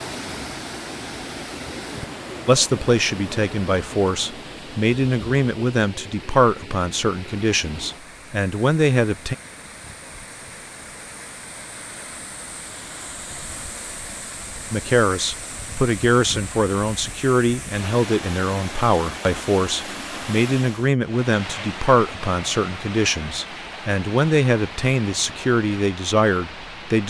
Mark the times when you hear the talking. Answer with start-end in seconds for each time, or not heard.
2.5-9.3, 14.7-27.0.